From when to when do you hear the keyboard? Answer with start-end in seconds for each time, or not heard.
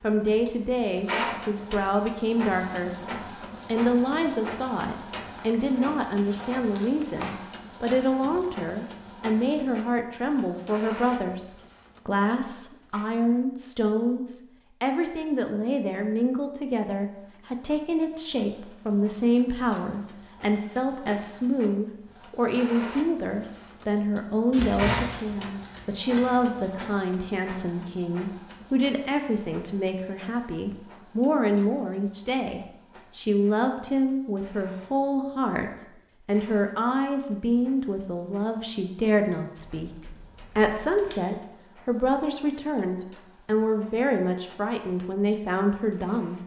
not heard.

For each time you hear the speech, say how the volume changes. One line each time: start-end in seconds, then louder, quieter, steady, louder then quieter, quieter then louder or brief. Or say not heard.
0.0-46.4 steady.